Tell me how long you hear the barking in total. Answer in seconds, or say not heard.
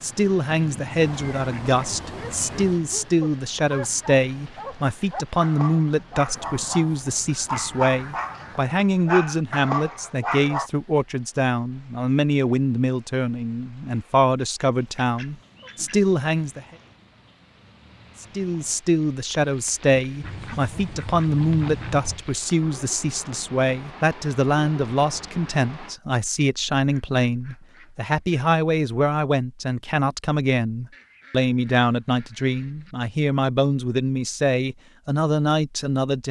9 s.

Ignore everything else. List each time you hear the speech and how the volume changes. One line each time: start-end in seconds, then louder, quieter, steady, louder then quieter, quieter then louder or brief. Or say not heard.
0.0-16.6 steady
18.2-36.2 steady.